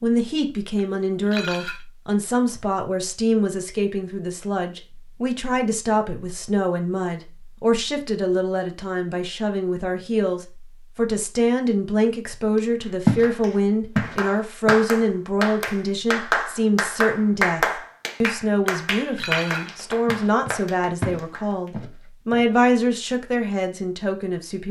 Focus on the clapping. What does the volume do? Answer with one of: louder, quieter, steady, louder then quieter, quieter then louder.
louder then quieter.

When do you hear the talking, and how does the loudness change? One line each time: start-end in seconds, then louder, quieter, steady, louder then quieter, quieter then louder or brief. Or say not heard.
0.0-24.6 steady.